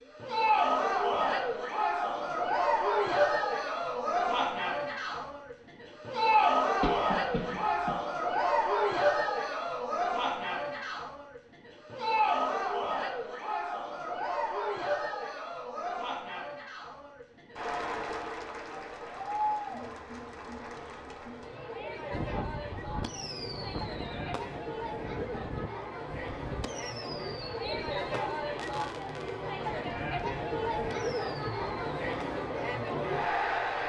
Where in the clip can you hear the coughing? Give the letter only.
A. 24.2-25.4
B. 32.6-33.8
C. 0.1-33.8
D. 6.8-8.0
D.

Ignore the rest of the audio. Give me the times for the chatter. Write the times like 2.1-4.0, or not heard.
0.1-33.8.